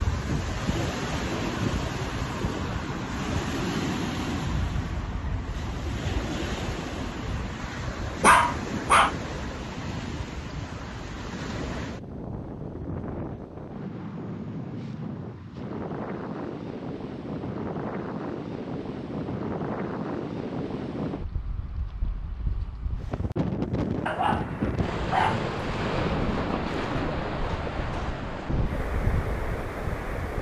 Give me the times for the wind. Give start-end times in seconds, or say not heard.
0.0-30.3.